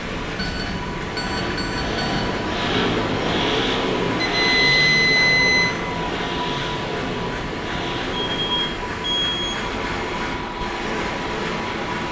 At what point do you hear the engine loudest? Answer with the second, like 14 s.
3 s.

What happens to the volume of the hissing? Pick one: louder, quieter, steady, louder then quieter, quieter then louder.
steady.